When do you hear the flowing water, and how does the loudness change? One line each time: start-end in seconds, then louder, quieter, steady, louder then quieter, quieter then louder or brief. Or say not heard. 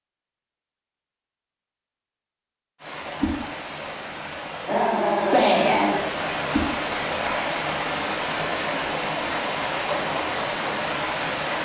2.8-11.6 louder.